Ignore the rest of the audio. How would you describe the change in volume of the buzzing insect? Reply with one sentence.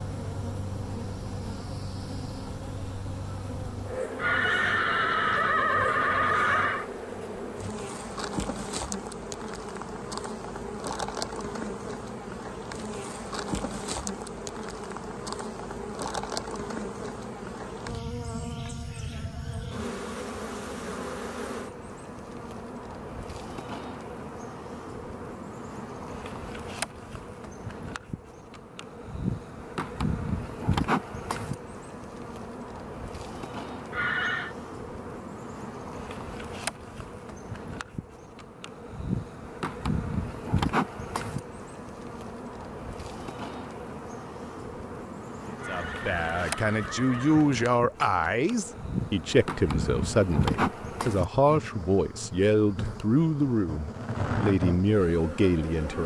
The volume of the buzzing insect stays about the same.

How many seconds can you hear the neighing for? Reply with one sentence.
You can hear the neighing for 5 seconds altogether.